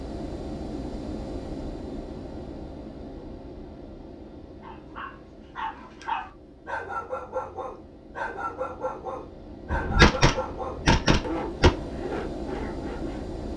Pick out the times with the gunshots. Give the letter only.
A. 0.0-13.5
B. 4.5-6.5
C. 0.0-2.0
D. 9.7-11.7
D.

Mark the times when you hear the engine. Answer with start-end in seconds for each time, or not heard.
0.0-13.5.